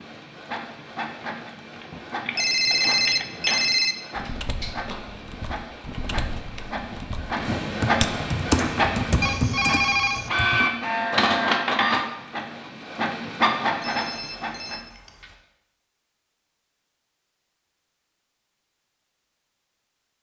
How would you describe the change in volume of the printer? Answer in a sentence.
The loudness of the printer goes up.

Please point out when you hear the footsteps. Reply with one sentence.
The footsteps can't be heard in this clip.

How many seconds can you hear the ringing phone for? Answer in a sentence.
You can hear the ringing phone for 5 seconds altogether.